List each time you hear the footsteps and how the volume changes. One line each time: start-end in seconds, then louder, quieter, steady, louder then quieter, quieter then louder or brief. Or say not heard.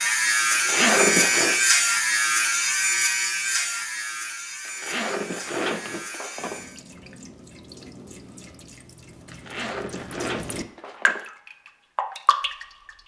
not heard.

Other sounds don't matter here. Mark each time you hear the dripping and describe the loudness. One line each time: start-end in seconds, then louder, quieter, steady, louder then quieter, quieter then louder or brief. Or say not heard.
6.3-12.9 louder.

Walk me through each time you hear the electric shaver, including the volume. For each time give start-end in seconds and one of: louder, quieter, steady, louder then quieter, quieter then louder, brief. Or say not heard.
0.0-6.8 quieter.